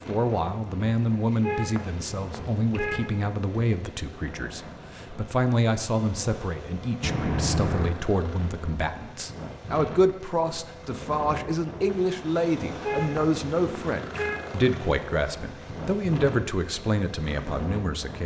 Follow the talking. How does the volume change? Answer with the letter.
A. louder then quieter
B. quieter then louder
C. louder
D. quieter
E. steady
E.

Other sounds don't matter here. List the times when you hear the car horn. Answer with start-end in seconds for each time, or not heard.
1.4-3.1, 7.0-7.9, 12.8-14.4.